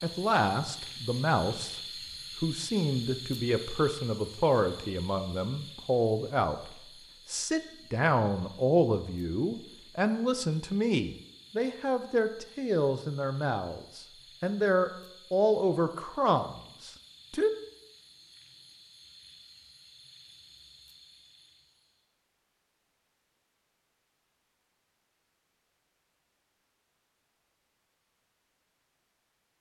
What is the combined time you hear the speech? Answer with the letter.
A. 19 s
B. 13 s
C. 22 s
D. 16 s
D.